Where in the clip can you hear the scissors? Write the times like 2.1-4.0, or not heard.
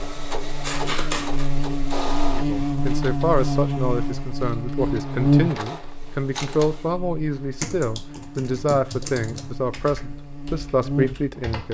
0.6-1.5.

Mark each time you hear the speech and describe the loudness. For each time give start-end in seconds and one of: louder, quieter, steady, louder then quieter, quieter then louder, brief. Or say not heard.
2.3-11.6 steady.